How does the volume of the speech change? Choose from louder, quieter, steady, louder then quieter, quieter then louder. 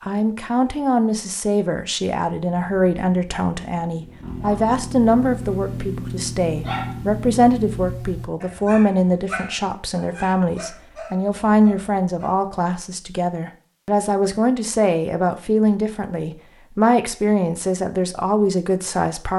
steady.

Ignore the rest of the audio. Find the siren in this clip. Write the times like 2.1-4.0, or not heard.
not heard.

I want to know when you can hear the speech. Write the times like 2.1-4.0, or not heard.
0.0-19.3.